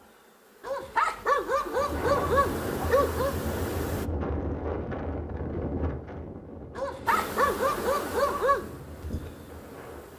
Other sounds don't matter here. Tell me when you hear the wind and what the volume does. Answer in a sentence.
The wind can be heard from 1.7 to 10.1 s, getting quieter.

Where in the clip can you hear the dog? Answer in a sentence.
The dog can be heard from 0.6 to 3.4 s and from 6.8 to 8.7 s.